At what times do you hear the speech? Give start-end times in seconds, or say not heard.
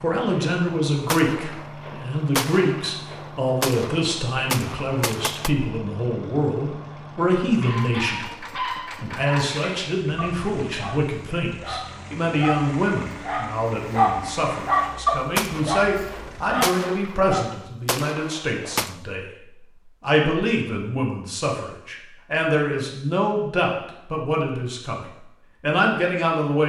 0.0-19.2, 20.0-25.0, 25.6-26.6.